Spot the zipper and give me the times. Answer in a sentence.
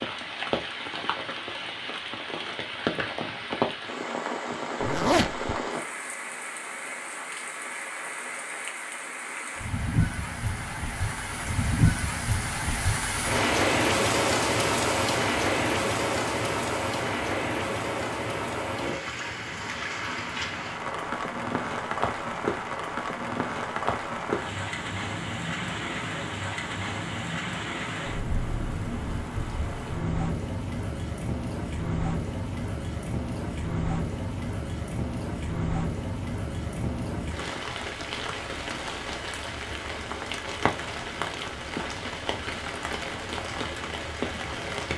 You can hear the zipper from 4.8 to 5.5 s.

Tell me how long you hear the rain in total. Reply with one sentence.
The rain can be heard for 45 seconds in total.